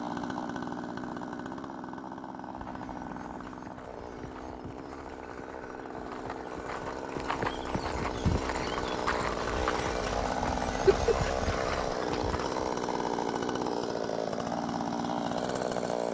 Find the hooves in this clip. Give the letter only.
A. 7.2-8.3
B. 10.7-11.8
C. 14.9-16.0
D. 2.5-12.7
D.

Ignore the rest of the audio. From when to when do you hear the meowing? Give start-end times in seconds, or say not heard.
10.7-11.8.